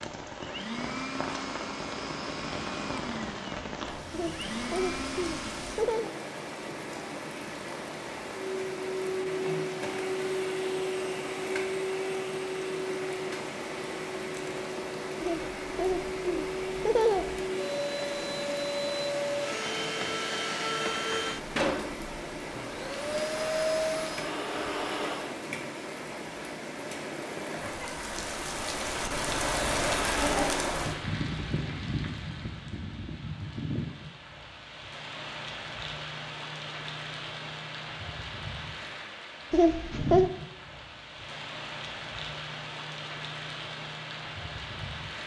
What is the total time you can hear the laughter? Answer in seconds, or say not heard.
5 s.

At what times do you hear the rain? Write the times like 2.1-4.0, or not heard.
0.0-45.2.